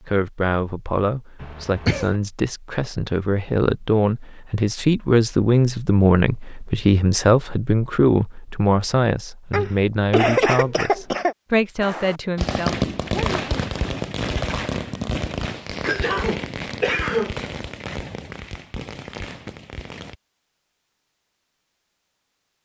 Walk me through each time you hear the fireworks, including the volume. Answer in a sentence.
The fireworks can be heard from 11.8 to 20.1 s, getting quieter.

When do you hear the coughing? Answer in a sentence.
The coughing can be heard from 1.4 to 2.1 s, from 9.5 to 11.3 s and from 15.8 to 17.4 s.